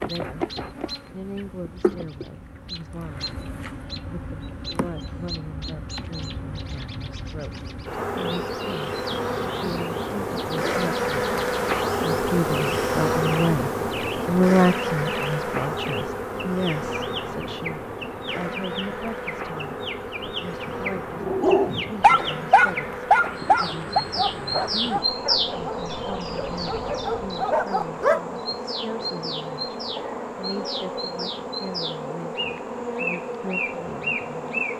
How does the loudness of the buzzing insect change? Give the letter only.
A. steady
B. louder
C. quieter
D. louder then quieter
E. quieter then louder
D.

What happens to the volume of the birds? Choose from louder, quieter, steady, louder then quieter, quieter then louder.
louder.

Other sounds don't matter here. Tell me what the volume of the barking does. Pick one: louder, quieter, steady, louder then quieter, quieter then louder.
quieter then louder.